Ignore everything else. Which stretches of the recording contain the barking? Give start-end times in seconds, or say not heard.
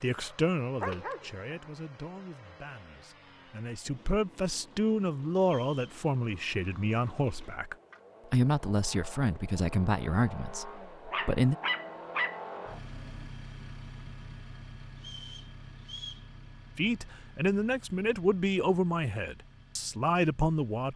0.2-1.4, 11.1-13.2.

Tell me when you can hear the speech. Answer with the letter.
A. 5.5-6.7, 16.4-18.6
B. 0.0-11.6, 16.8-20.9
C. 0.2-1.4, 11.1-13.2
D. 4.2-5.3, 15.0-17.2
B.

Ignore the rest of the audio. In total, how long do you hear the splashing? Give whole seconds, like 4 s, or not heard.
not heard.